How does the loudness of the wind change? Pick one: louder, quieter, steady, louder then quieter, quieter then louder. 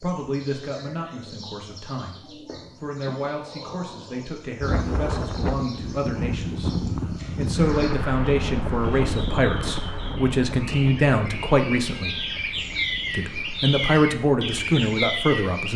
quieter.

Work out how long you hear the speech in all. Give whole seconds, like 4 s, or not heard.
14 s.